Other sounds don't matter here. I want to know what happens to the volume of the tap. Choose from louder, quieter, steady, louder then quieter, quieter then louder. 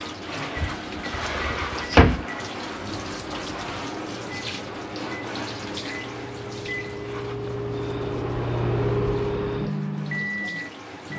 quieter.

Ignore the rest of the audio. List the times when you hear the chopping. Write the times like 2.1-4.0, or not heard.
not heard.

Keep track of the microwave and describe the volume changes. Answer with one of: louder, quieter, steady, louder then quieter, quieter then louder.
louder.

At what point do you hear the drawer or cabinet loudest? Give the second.
2 s.